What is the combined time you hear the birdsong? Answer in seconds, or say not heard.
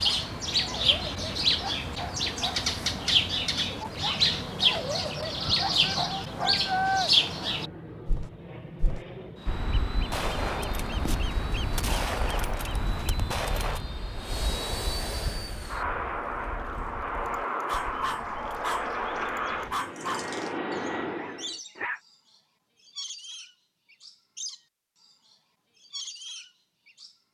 27 s.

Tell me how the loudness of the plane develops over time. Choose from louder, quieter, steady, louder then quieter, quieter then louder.
louder.